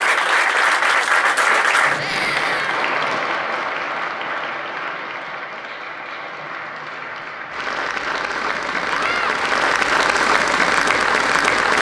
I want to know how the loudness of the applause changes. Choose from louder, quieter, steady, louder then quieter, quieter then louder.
quieter then louder.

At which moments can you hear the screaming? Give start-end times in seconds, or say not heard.
1.9-2.9, 8.8-9.3.